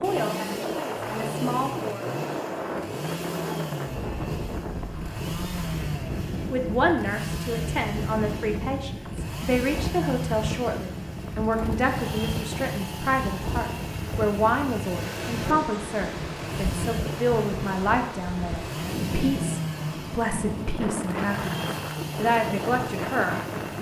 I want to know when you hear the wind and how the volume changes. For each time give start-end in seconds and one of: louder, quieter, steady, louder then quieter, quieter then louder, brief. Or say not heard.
0.0-23.7 steady.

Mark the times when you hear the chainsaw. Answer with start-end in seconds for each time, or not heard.
0.0-23.7.